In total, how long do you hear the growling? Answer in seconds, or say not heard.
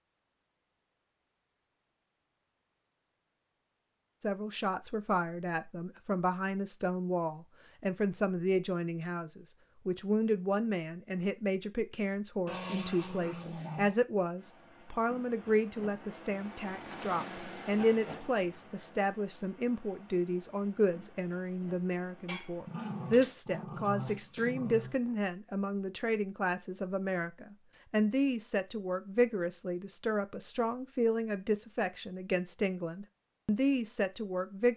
4 s.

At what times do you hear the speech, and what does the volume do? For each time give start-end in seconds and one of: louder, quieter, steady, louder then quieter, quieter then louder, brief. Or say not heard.
4.2-34.7 steady.